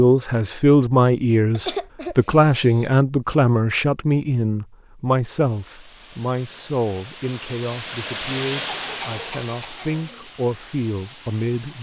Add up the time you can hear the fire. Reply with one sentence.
You can't hear the fire here.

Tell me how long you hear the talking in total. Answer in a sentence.
The talking can be heard for 12 seconds in total.